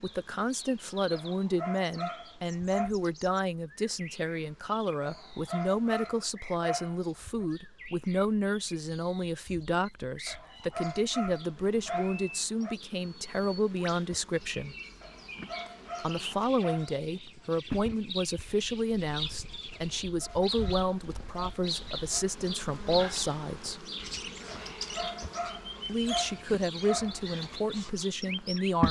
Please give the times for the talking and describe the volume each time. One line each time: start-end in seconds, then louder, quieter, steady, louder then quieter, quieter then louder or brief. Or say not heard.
0.0-14.8 steady
16.0-23.9 steady
25.9-28.8 brief.